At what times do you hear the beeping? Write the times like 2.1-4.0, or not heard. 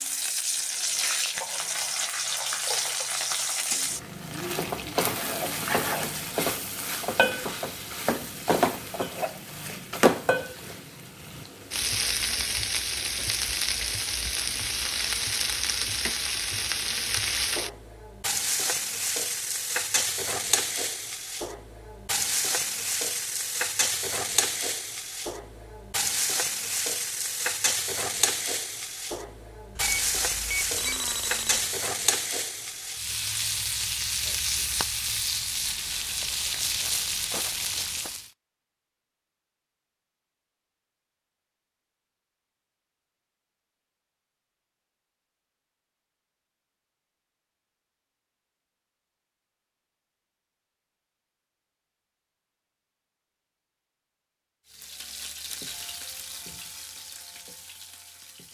29.8-31.8.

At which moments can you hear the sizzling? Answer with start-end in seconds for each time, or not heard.
0.0-38.3, 54.7-58.4.